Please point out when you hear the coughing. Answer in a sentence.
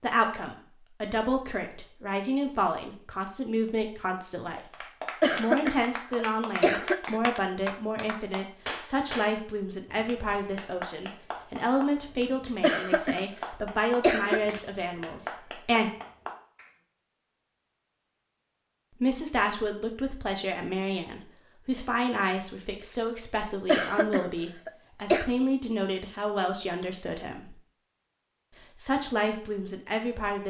You can hear the coughing from 5.2 to 7.2 s, from 12.6 to 14.6 s and from 23.6 to 25.3 s.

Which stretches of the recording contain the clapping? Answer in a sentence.
You can hear the clapping from 4.7 to 16.7 s.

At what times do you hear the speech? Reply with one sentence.
You can hear the speech from 0.0 to 15.9 s, from 19.0 to 27.6 s and from 28.8 to 30.4 s.